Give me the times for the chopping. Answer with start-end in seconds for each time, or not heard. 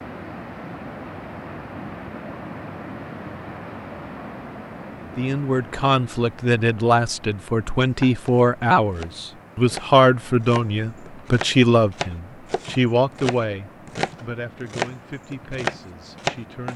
7.8-16.7.